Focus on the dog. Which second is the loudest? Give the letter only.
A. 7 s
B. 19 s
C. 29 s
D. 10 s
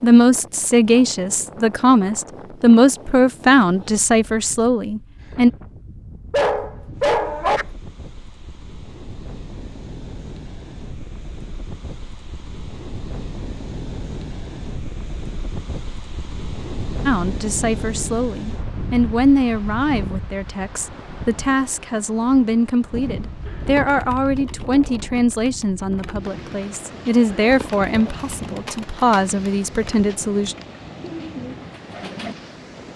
A.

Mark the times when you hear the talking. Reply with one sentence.
The talking can be heard from 0.0 to 5.5 s and from 17.1 to 30.6 s.